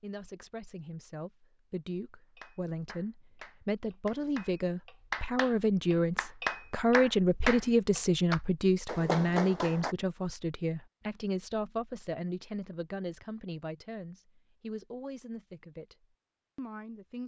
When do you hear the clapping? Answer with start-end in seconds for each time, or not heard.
2.4-9.9.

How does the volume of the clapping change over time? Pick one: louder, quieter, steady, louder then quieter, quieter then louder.
louder.